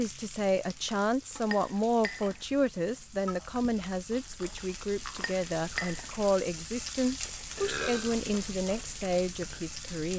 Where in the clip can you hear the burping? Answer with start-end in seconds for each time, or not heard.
7.5-8.2.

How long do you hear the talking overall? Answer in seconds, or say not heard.
10 s.